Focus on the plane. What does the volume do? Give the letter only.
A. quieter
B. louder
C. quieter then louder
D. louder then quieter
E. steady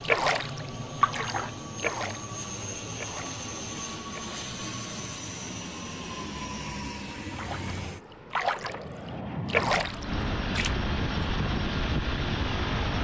B.